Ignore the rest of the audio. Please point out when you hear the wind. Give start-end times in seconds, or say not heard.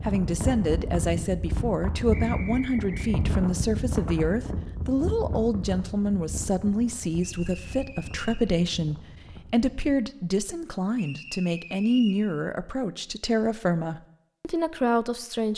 0.0-9.9.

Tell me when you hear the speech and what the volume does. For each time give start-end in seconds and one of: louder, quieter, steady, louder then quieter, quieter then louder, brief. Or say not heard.
0.0-15.5 steady.